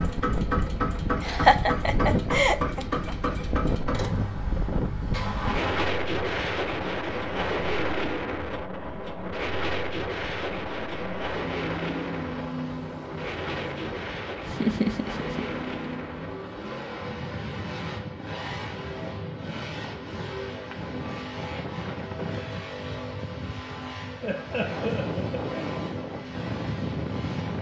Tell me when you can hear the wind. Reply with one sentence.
The wind can be heard from 0.0 to 27.5 s.